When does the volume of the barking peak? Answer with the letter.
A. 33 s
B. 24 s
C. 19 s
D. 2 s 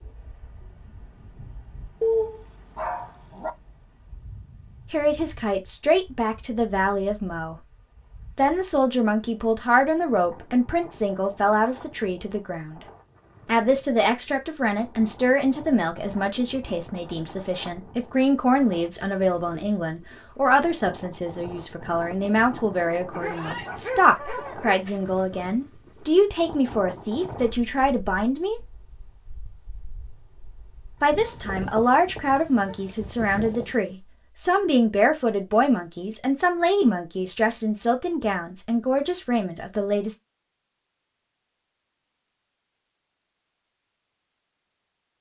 D.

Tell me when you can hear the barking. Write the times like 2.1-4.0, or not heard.
2.0-3.5, 23.1-24.9, 30.9-33.0.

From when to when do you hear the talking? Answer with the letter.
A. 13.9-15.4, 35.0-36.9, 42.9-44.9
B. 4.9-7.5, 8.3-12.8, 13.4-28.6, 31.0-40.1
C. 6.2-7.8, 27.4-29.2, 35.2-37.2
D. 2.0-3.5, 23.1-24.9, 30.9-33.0
B.